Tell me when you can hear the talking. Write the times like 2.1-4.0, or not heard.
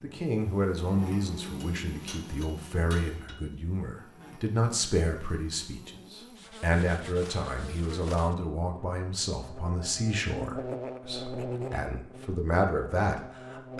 0.0-13.7.